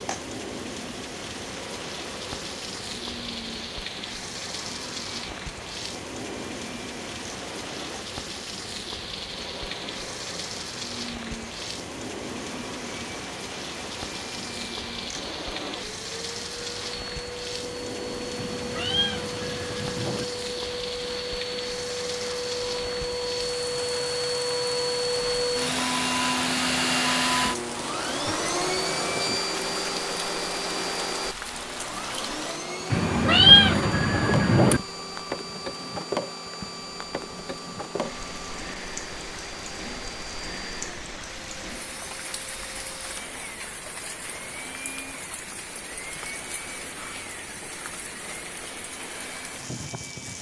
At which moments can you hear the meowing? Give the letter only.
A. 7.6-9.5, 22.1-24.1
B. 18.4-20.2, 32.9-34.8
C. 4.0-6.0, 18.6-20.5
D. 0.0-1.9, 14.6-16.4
B.